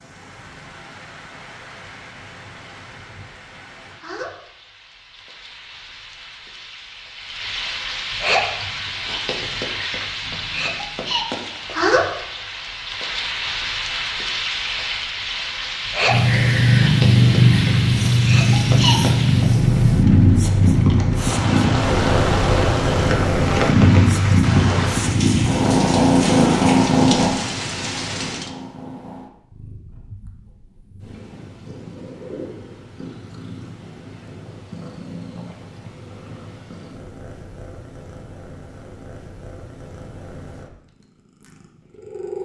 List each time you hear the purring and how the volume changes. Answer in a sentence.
You can hear the purring from 16.1 to 42.3 s, getting quieter.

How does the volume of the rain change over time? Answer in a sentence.
The volume of the rain goes up.